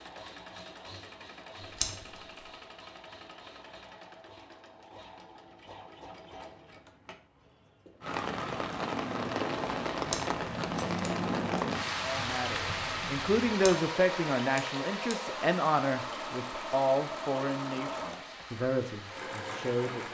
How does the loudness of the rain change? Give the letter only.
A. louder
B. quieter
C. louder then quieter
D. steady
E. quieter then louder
B.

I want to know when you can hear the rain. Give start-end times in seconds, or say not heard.
8.0-20.1.